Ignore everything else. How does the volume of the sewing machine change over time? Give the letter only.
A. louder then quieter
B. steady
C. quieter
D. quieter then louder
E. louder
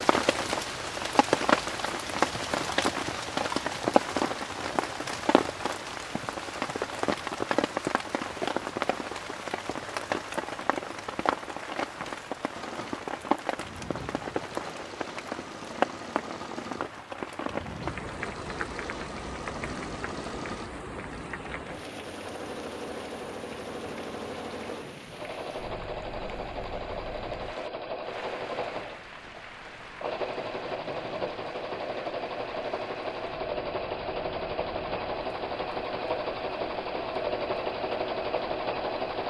E.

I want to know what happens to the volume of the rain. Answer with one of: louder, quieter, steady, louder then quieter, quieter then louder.
quieter.